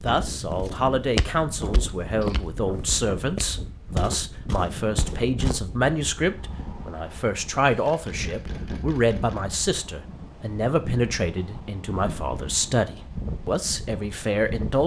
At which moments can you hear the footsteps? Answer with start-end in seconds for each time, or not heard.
0.3-5.6.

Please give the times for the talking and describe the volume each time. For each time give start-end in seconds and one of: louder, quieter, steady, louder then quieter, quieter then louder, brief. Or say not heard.
0.0-14.8 steady.